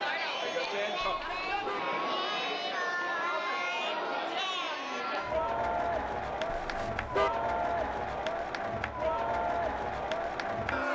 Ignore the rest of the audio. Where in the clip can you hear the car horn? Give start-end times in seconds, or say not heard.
1.0-1.8, 6.5-7.3.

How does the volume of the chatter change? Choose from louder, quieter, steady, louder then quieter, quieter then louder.
steady.